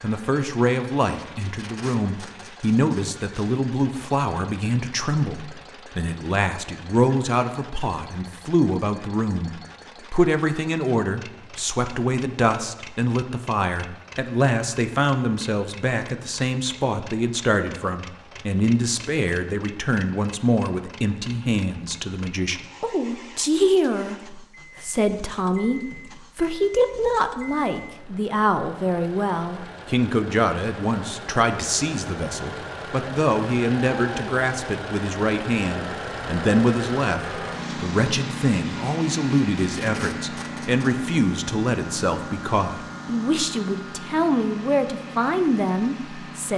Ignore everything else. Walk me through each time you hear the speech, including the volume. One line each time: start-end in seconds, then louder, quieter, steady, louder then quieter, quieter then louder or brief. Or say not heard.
0.0-9.5 steady
10.1-46.5 steady.